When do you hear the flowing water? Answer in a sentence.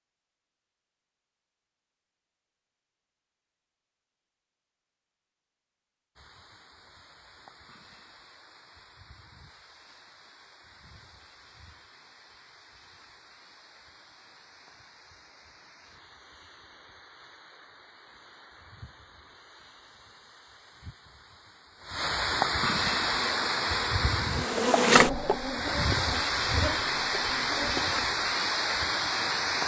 The flowing water can be heard from 6.2 to 29.6 s.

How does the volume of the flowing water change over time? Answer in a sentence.
The volume of the flowing water goes up.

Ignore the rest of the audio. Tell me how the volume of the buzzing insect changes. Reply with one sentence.
The loudness of the buzzing insect goes up, then down.